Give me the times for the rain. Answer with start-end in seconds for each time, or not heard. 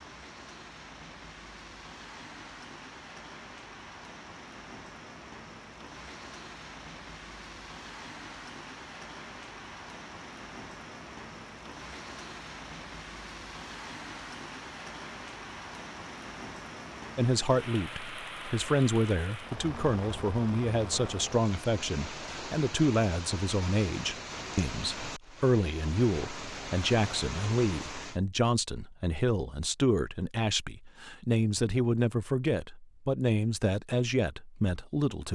0.0-28.2.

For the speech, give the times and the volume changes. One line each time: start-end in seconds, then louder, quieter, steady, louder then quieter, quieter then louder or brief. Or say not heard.
17.1-35.3 steady.